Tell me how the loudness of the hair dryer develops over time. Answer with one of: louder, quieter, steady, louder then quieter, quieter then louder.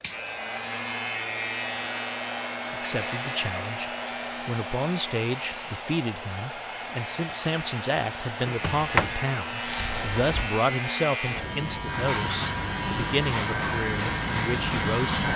steady.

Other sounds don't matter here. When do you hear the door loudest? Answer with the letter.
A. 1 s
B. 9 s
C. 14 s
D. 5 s
B.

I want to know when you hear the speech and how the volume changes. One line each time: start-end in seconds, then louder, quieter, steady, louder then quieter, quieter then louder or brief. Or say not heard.
2.7-15.2 steady.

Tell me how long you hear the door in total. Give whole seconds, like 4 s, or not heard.
2 s.